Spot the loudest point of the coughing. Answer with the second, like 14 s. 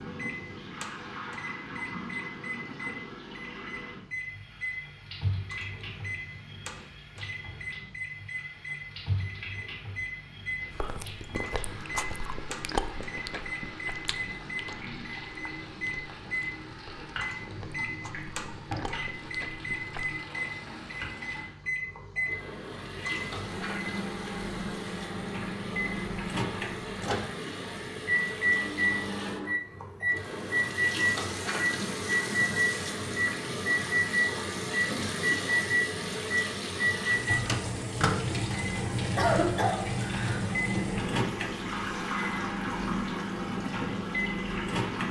39 s.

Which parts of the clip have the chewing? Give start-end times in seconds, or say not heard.
10.7-20.1.